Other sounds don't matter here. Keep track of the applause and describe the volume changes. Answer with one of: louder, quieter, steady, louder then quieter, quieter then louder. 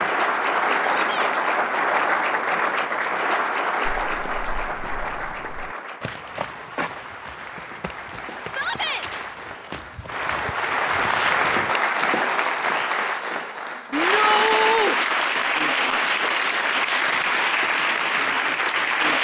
quieter then louder.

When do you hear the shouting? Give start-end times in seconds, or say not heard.
0.9-1.4, 8.4-9.1, 13.9-14.9.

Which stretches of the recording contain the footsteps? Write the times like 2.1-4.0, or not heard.
3.9-11.7.